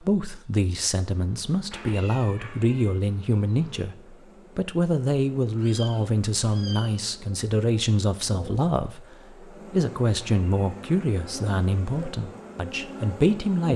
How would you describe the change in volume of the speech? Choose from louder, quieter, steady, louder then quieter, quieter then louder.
steady.